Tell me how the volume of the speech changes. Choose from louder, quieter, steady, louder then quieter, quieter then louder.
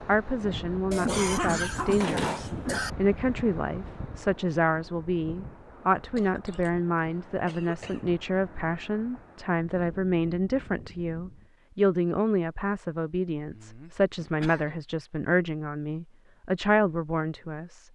steady.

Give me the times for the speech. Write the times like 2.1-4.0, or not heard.
0.1-17.8.